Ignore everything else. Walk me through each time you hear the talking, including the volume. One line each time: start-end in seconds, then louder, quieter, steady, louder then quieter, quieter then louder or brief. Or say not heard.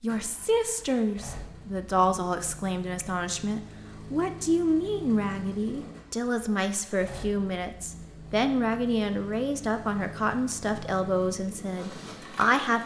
0.0-12.8 steady.